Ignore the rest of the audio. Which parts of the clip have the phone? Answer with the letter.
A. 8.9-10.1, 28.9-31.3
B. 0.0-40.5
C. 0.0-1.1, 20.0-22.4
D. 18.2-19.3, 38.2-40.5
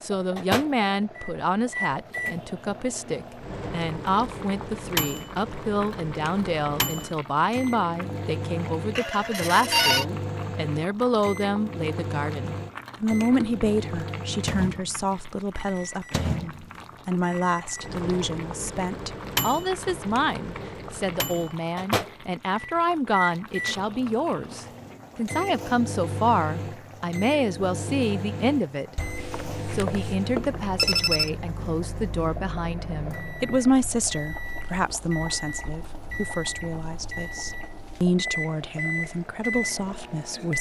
A.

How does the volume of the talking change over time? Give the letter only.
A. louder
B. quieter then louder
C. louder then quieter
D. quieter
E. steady
E.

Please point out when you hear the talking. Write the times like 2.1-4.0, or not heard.
0.0-40.5.